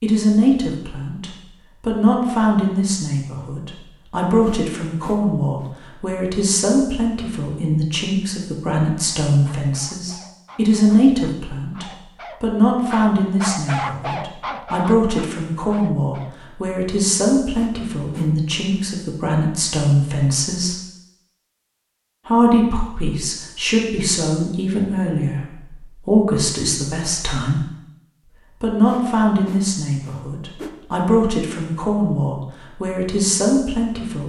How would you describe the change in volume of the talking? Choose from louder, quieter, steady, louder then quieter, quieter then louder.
steady.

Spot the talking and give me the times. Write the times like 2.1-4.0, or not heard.
0.0-20.8, 22.2-27.6, 28.6-34.2.